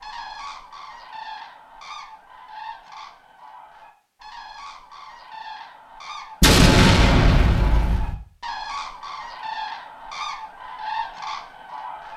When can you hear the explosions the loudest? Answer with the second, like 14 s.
7 s.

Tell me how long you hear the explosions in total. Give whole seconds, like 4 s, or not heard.
2 s.